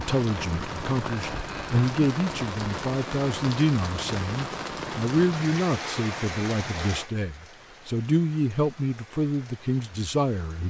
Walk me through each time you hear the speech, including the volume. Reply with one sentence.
You can hear the speech from 0.0 to 10.6 s, at a steady volume.